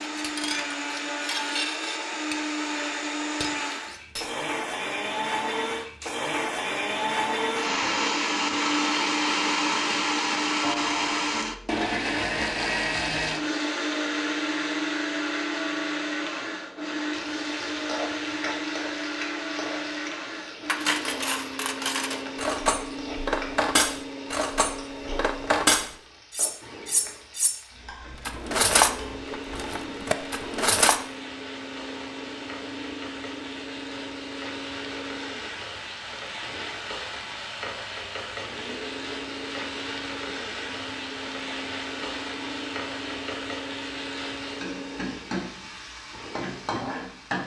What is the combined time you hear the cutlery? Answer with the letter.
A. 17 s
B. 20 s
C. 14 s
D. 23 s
C.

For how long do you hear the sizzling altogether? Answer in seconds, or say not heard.
30 s.